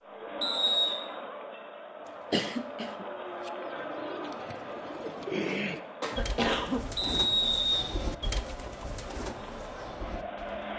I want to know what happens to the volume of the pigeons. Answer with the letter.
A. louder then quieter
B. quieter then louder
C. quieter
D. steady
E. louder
A.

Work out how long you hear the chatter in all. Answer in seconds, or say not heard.
11 s.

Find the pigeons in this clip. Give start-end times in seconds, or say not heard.
3.5-10.7.